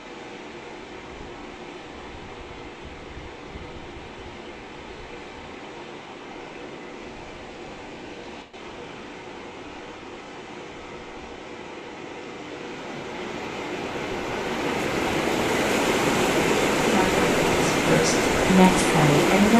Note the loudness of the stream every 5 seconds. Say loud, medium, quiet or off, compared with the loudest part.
quiet, quiet, medium, loud.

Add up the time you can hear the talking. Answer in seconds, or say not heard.
3 s.